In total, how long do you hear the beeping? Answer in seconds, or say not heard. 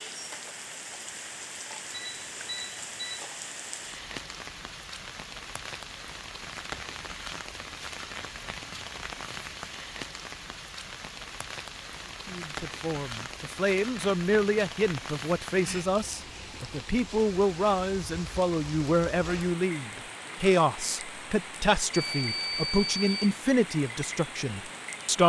3 s.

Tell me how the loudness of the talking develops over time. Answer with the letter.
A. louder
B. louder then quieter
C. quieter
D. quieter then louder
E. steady
E.